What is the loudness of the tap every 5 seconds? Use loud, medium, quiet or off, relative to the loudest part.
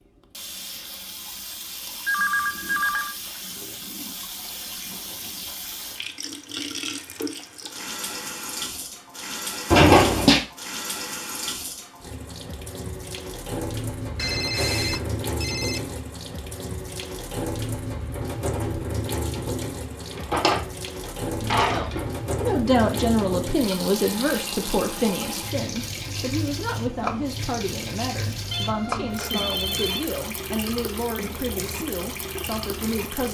medium, loud, loud, loud, loud, loud, loud.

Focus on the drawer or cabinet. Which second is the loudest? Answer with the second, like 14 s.
10 s.